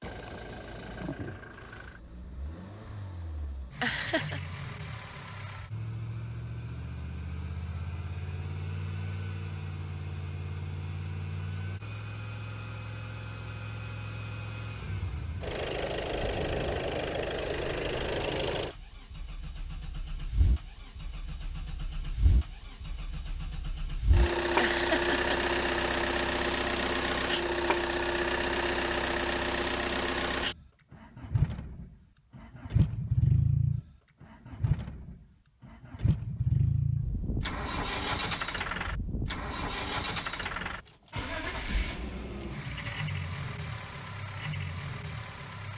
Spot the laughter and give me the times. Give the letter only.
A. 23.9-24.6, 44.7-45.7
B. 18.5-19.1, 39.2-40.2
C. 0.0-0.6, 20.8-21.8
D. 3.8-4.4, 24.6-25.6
D.